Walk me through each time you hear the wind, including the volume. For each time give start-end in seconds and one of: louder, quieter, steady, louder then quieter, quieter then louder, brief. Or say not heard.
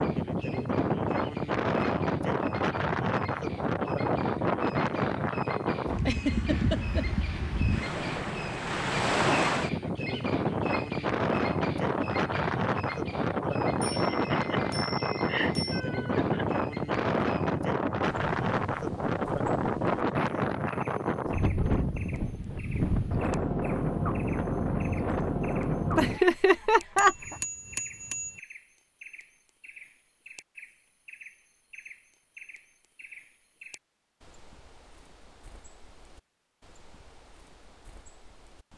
0.0-26.2 steady.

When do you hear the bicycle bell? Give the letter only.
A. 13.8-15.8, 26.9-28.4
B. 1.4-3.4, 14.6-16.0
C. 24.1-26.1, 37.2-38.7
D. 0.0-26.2
A.